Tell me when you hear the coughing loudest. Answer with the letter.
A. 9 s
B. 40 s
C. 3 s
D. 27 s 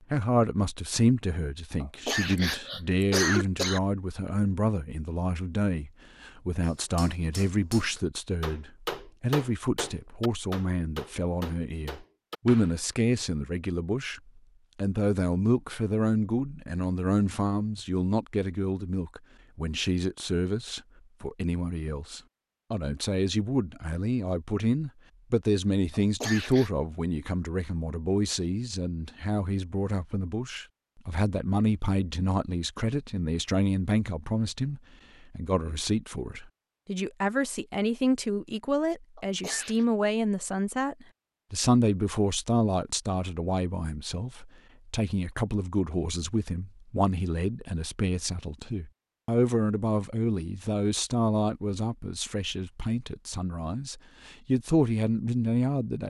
C.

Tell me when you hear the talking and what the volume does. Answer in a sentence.
The talking can be heard from 0.1 to 56.0 s, at a steady volume.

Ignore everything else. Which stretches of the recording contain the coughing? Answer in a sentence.
You can hear the coughing from 1.8 to 3.8 s, from 25.9 to 26.7 s and from 39.1 to 39.9 s.